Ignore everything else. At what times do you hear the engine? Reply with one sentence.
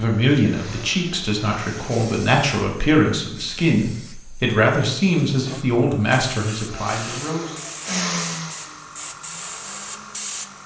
You can hear the engine from 0.0 to 2.2 s and from 6.7 to 10.6 s.